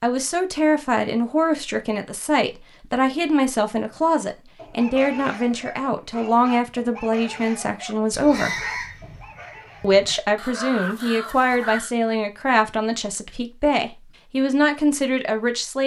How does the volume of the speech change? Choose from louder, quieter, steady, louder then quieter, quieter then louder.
steady.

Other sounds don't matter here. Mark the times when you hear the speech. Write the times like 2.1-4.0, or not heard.
0.0-8.6, 9.8-15.8.